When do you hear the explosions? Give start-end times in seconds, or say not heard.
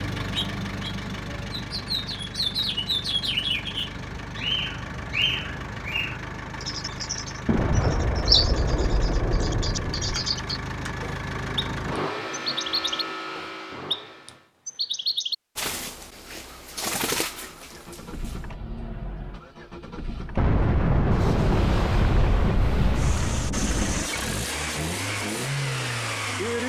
7.5-10.2, 20.4-24.1.